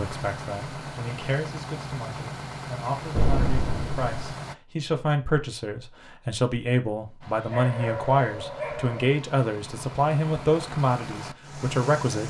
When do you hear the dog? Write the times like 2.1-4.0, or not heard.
7.5-9.1.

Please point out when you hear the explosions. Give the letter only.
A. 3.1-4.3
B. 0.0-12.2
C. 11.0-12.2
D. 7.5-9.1
A.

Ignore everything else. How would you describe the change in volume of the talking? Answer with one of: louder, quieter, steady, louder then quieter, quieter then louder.
louder.